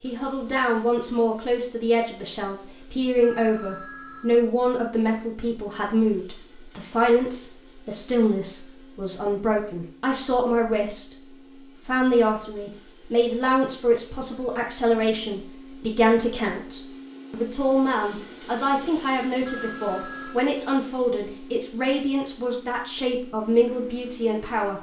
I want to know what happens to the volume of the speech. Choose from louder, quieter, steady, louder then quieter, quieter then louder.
steady.